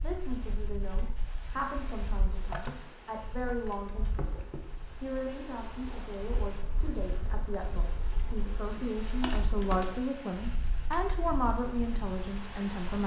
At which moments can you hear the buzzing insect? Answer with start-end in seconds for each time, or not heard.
1.8-10.0.